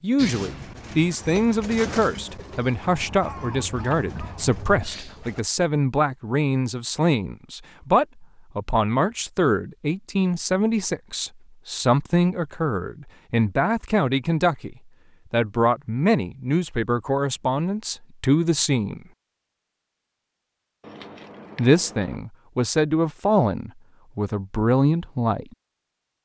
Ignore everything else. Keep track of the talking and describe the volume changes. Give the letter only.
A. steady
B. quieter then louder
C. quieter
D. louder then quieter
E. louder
A.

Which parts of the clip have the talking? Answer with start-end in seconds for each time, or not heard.
0.0-19.0, 21.6-25.4.